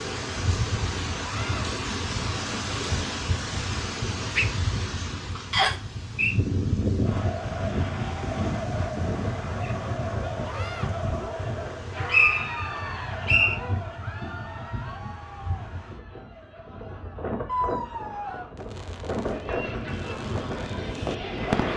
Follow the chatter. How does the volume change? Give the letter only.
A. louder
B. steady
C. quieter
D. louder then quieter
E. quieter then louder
E.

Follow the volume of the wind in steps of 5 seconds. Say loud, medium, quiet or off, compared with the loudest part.
loud, loud, medium, medium, loud.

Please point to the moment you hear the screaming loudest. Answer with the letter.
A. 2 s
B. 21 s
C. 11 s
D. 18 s
D.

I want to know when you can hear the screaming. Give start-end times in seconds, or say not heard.
1.2-1.6, 10.4-10.9, 17.4-18.4.